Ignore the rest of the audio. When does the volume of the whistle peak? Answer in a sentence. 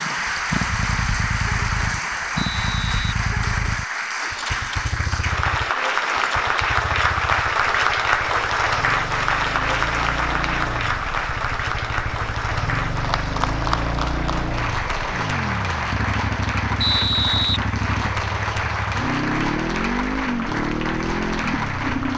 The loudest moment of the whistle is at 17 seconds.